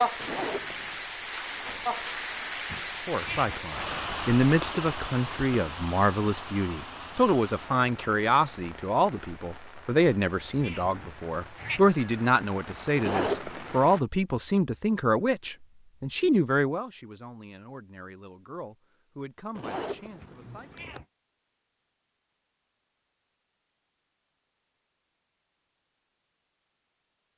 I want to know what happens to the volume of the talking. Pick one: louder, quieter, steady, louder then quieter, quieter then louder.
quieter.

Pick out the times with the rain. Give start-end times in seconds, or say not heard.
0.0-14.1.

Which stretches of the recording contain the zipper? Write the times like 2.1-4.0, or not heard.
0.1-1.0, 12.9-13.8, 19.6-21.0.